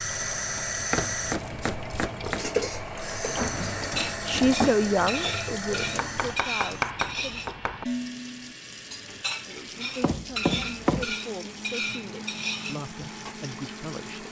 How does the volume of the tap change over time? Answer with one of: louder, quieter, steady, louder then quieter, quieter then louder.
quieter.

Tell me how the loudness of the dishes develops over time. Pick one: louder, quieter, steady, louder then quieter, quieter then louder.
steady.